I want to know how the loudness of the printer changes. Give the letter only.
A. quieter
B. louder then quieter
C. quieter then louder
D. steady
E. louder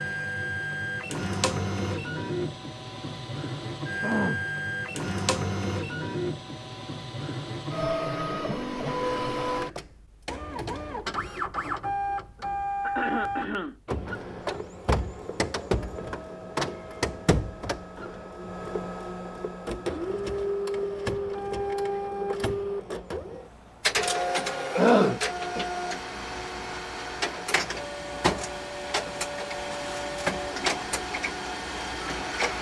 D.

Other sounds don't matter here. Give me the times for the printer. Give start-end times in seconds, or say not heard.
0.0-32.5.